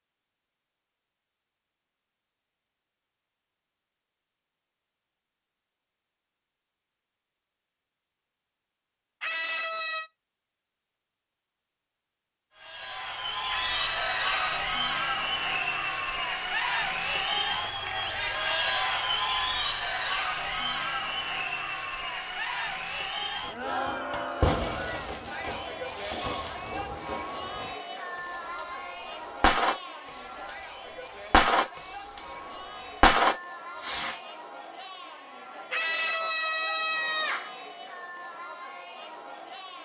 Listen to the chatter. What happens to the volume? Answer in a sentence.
The loudness of the chatter goes down.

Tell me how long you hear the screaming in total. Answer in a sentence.
You can hear the screaming for 4 seconds altogether.